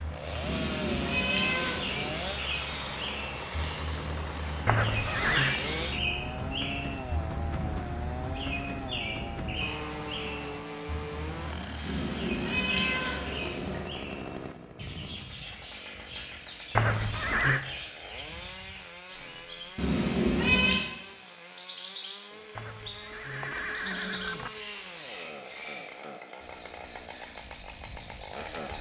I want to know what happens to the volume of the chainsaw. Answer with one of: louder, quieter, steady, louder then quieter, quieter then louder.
quieter.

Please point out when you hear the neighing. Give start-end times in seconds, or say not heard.
4.7-5.6, 16.8-17.6, 22.6-24.5.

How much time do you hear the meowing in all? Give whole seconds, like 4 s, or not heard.
5 s.